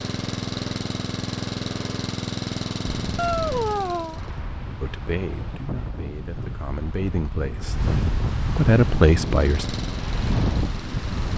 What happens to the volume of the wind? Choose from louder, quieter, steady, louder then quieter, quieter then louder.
louder.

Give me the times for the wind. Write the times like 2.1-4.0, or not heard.
2.8-11.3.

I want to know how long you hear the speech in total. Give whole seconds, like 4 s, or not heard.
4 s.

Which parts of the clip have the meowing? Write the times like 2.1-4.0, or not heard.
3.1-4.2.